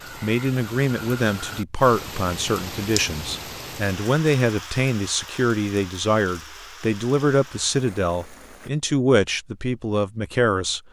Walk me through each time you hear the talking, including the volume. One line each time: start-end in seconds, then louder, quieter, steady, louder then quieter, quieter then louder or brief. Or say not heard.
0.2-10.8 steady.